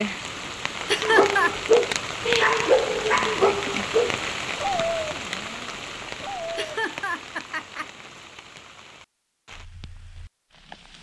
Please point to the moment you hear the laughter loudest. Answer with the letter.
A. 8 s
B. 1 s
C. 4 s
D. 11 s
B.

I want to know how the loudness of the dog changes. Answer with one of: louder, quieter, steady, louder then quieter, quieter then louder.
quieter.